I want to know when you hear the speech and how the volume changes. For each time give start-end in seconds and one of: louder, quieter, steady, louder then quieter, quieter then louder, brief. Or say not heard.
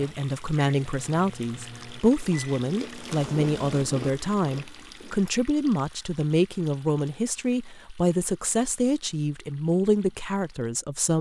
0.0-11.1 steady.